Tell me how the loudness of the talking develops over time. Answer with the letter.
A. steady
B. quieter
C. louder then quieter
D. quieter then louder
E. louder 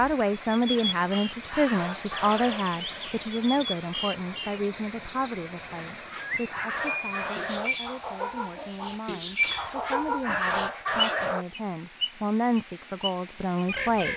D.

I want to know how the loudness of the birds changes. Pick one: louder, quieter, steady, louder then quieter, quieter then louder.
louder.